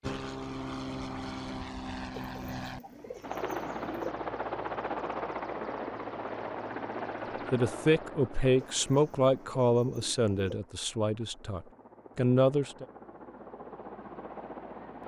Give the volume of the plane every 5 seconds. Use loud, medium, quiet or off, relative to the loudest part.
loud, loud, medium.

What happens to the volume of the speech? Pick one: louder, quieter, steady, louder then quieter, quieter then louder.
quieter then louder.